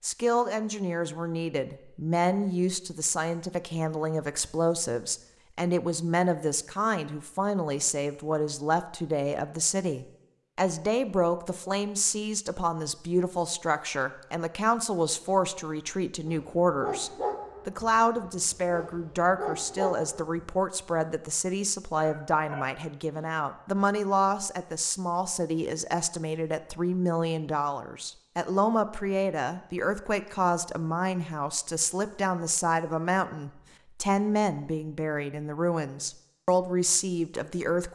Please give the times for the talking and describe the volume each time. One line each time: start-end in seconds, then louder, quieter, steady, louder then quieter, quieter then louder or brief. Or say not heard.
0.0-37.8 steady.